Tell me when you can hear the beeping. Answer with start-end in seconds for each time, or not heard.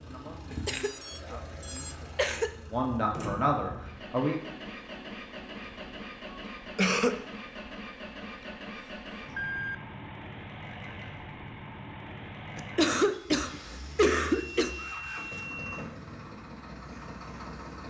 0.7-1.9, 9.3-9.8, 14.3-15.9.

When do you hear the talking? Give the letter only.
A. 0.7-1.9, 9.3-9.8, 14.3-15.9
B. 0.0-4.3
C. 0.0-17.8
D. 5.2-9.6
B.